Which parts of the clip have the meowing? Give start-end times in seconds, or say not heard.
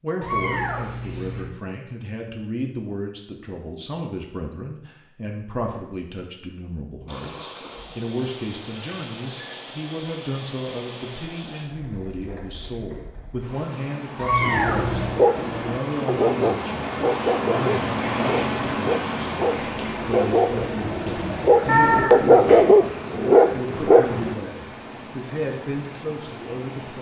0.2-1.5, 14.2-15.2, 21.6-22.6.